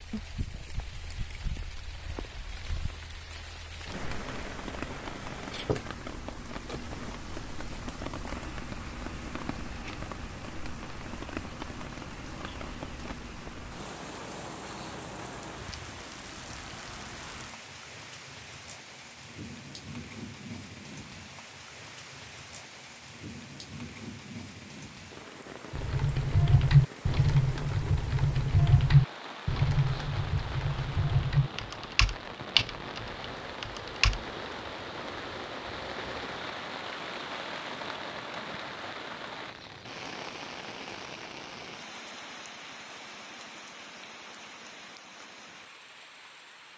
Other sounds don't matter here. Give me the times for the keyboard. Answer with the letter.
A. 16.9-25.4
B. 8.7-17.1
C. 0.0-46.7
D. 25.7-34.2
D.